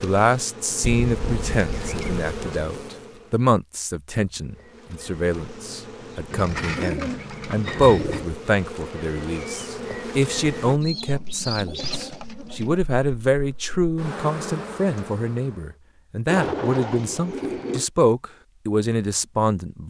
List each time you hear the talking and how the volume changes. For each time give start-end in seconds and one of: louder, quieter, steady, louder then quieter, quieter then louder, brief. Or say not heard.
0.0-19.8 steady.